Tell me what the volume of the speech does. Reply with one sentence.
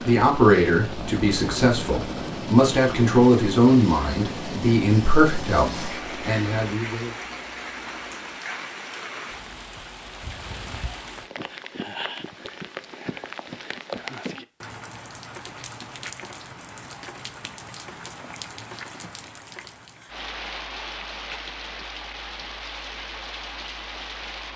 The volume of the speech goes down.